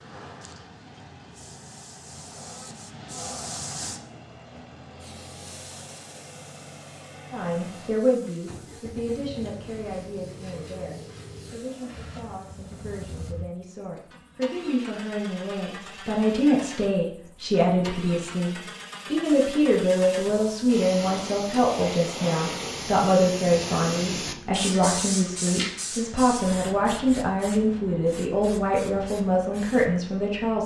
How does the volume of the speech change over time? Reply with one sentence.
The volume of the speech goes up.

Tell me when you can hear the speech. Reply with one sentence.
The speech can be heard from 7.3 to 30.6 s.